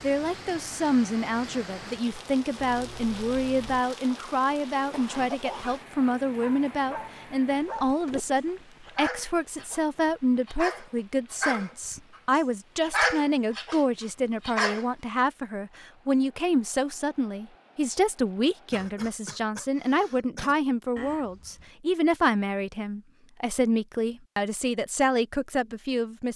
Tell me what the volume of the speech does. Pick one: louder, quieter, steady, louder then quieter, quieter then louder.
steady.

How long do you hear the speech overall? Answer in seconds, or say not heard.
26 s.